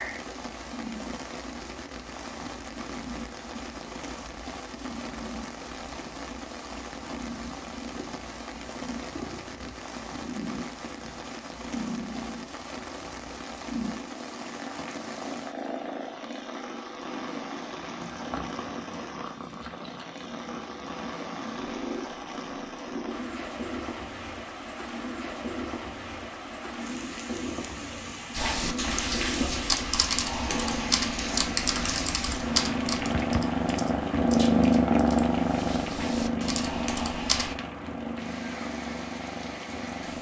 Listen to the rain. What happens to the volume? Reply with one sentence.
The volume of the rain stays about the same.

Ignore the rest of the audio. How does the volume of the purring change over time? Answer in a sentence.
The volume of the purring goes up.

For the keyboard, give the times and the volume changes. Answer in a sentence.
You can hear the keyboard from 28.3 to 37.5 s, getting quieter then louder.